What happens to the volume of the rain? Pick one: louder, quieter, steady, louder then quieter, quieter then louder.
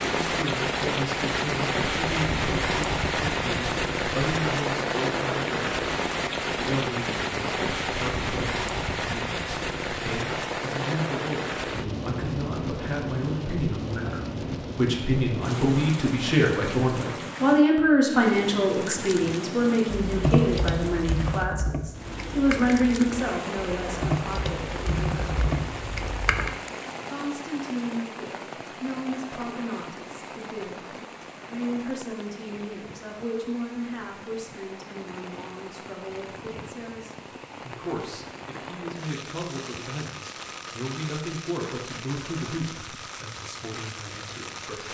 quieter.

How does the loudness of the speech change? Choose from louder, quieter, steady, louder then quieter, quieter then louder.
louder then quieter.